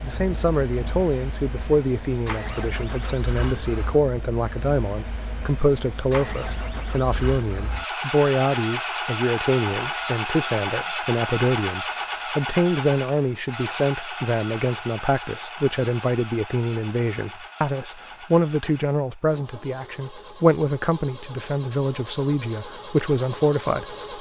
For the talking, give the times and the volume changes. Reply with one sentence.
You can hear the talking from 0.0 to 23.9 s, at a steady volume.